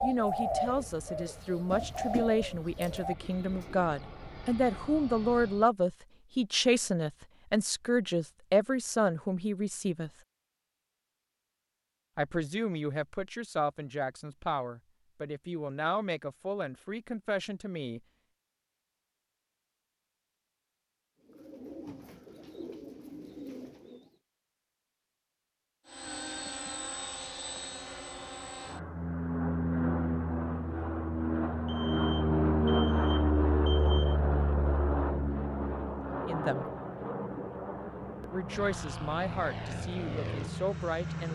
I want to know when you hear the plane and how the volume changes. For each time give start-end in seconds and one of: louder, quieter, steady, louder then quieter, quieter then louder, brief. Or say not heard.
0.0-5.7 louder
25.9-41.3 louder then quieter.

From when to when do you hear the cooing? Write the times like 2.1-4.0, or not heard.
0.0-3.9, 21.2-24.1.